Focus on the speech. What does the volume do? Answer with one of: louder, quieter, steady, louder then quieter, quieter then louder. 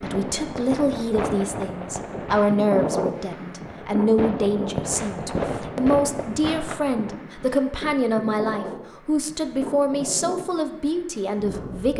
steady.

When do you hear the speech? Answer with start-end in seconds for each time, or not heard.
0.0-11.9.